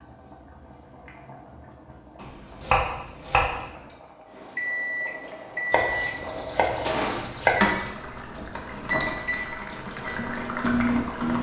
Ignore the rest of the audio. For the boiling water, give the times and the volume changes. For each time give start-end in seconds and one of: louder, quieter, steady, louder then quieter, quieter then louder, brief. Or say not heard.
0.0-11.3 louder.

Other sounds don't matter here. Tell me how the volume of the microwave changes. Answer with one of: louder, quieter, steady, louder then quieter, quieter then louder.
quieter then louder.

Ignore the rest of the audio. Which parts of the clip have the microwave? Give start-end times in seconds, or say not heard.
4.3-11.3.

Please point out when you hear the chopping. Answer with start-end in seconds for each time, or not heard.
2.2-3.5, 5.7-7.8.